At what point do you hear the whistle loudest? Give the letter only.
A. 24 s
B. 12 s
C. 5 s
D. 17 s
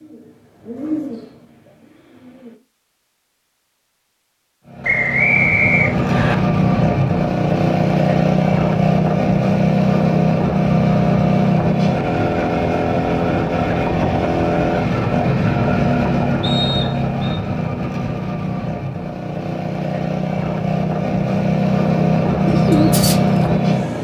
C.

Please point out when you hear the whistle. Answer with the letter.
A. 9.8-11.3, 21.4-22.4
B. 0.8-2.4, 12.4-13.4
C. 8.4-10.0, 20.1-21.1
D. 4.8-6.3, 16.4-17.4
D.